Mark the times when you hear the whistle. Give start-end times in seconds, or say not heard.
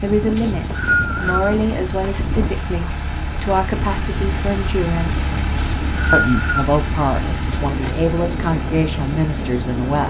0.3-1.6, 5.5-6.7.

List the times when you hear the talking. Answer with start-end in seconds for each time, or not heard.
0.0-5.2, 6.1-10.0.